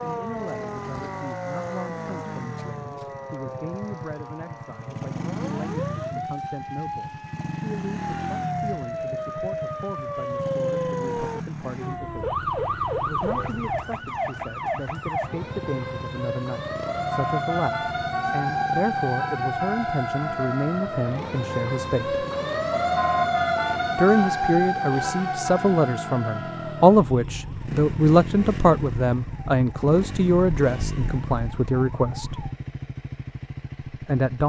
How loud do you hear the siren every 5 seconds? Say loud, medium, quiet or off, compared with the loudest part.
medium, medium, loud, loud, loud, medium, quiet.